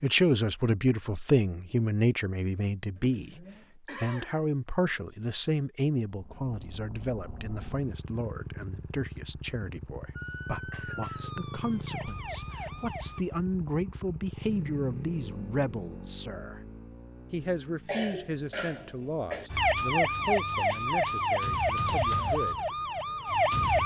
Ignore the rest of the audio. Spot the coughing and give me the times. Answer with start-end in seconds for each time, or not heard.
3.0-4.4, 10.3-11.3, 17.9-19.5.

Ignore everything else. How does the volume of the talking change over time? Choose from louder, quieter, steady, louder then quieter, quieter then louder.
quieter.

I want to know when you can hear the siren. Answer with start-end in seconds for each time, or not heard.
10.2-13.2, 19.5-23.8.